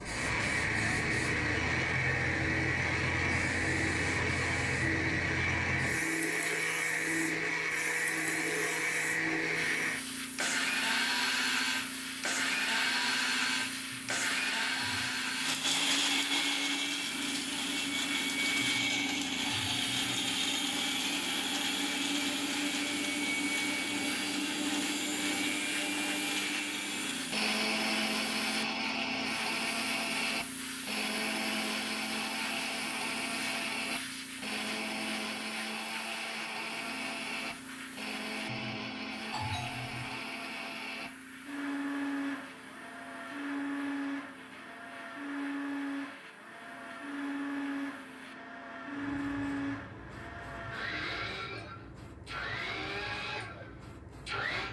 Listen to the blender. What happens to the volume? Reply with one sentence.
The volume of the blender goes down.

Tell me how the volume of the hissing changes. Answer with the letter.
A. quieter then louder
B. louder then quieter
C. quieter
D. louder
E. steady
C.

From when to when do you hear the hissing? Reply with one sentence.
The hissing can be heard from 0.0 to 54.6 s.